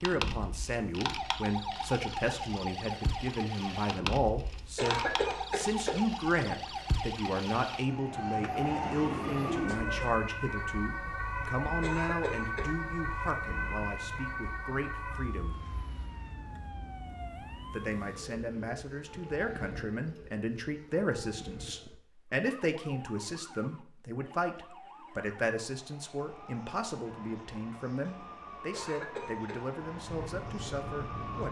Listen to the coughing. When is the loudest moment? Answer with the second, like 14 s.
5 s.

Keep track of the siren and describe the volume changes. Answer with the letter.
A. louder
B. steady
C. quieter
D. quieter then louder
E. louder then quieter
C.